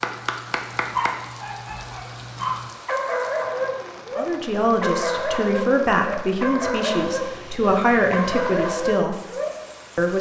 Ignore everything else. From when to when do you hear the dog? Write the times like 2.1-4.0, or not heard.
0.0-9.7.